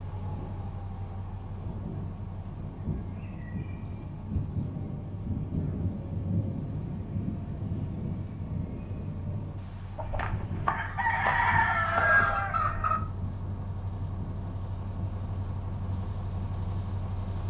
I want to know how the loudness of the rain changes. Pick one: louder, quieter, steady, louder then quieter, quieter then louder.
louder then quieter.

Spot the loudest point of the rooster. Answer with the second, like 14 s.
12 s.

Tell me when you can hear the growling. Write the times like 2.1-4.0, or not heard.
not heard.